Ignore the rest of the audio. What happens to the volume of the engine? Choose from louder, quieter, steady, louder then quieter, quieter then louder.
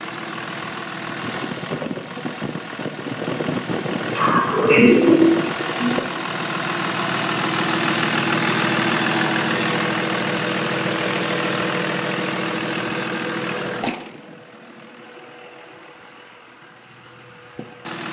louder then quieter.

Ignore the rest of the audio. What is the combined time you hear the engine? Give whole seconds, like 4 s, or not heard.
18 s.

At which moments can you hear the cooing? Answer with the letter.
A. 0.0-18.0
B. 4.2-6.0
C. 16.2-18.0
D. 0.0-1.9
B.